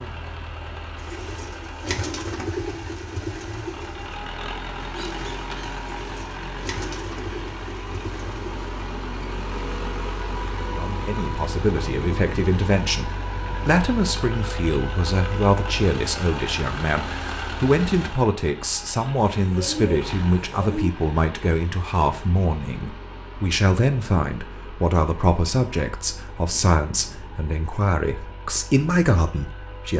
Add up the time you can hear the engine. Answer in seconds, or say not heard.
30 s.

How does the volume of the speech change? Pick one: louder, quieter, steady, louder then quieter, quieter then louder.
steady.